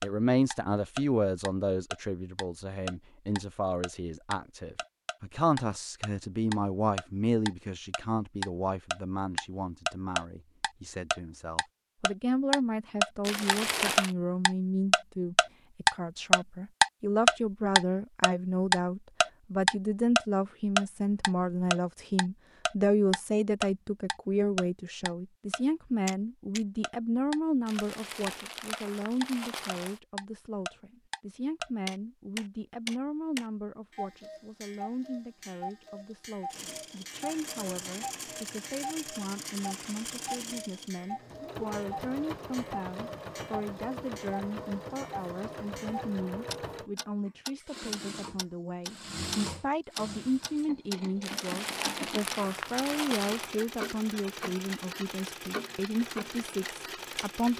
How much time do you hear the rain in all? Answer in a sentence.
The rain can't be heard in this clip.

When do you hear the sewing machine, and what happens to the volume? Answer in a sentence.
The sewing machine can be heard from 36.5 to 57.5 s, at a steady volume.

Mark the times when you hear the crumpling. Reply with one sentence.
The crumpling can be heard from 13.2 to 14.2 s, from 27.6 to 30.0 s and from 51.2 to 53.5 s.